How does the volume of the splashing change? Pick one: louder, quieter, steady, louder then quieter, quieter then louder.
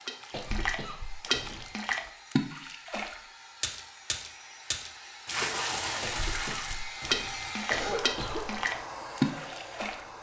steady.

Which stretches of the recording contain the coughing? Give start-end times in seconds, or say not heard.
0.3-1.8, 6.0-8.6.